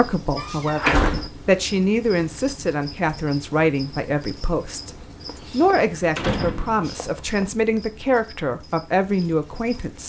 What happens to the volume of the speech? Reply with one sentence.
The volume of the speech stays about the same.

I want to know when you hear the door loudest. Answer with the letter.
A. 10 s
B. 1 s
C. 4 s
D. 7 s
B.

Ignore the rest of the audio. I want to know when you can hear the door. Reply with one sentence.
You can hear the door from 0.3 to 1.3 s and from 5.2 to 7.5 s.